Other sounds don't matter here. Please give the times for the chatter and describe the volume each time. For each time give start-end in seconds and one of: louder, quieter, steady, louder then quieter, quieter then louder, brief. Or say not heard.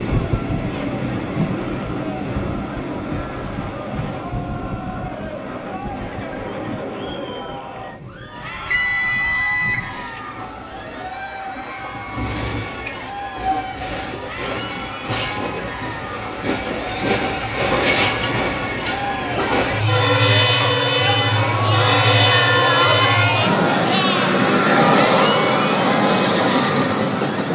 0.0-27.5 louder.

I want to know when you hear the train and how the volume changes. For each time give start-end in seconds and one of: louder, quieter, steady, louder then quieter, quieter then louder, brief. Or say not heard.
0.0-27.5 quieter then louder.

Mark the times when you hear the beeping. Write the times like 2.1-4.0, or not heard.
8.7-10.2.